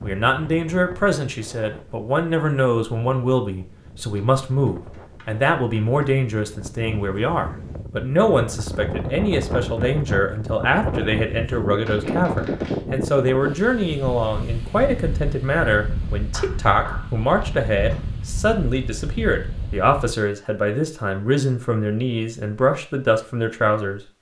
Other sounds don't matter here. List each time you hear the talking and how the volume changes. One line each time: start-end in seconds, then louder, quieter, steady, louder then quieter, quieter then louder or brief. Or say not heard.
0.0-24.0 steady.